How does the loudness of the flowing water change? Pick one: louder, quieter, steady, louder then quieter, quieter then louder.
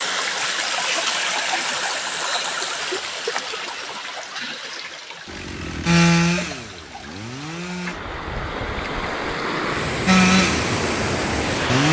quieter then louder.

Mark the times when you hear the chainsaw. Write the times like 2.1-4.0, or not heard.
5.2-8.0, 10.1-11.8.